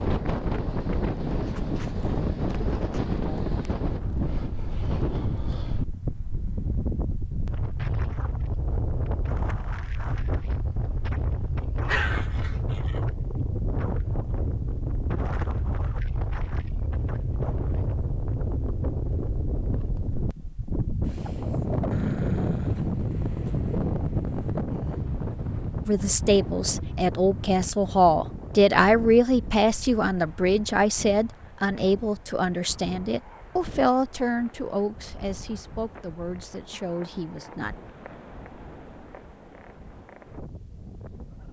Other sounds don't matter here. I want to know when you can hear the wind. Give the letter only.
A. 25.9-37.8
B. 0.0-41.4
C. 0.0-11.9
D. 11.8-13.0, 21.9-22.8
B.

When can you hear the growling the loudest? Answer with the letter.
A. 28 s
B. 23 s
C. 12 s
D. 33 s
C.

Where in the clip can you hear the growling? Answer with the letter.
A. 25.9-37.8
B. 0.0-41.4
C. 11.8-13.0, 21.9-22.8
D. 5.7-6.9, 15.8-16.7
C.